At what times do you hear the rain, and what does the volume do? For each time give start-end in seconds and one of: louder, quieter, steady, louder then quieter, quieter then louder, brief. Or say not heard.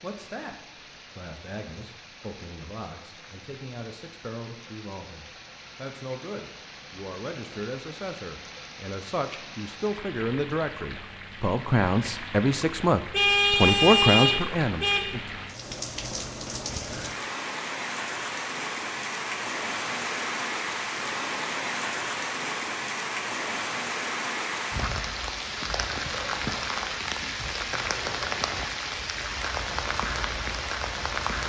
0.0-31.4 louder.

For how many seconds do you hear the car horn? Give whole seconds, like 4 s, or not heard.
2 s.